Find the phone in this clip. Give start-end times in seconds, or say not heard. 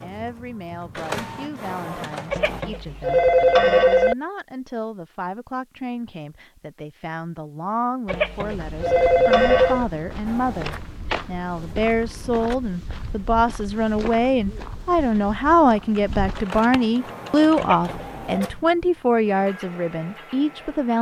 2.3-4.2, 8.1-9.8, 17.6-18.5.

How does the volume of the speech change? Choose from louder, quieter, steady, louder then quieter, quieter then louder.
louder.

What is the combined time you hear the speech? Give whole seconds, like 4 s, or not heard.
21 s.